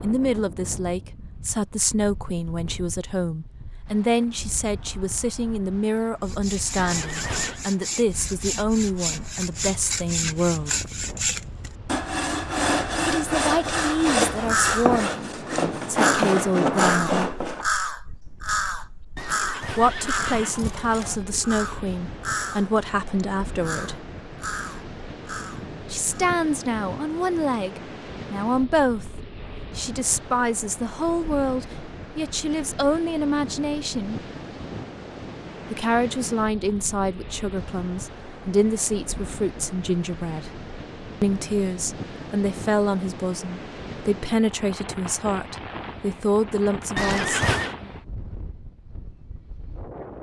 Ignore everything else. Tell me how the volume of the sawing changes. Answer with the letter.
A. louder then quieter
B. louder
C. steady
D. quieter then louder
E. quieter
B.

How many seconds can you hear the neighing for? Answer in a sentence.
You can hear the neighing for 4 seconds altogether.